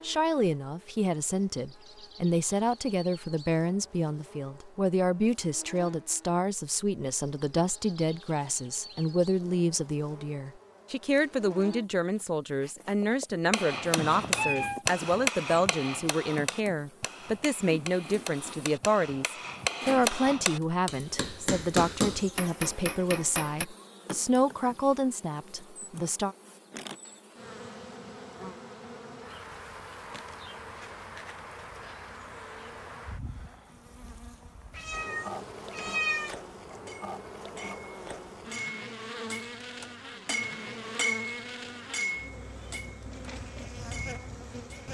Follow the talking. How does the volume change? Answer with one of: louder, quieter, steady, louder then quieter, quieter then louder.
steady.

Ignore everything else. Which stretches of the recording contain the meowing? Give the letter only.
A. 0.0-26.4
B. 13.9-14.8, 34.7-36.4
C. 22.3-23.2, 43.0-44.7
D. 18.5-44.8
B.